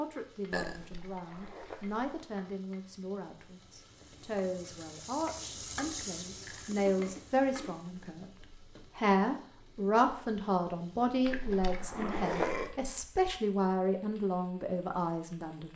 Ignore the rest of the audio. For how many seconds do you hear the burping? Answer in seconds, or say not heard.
2 s.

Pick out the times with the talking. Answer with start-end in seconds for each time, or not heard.
0.0-15.7.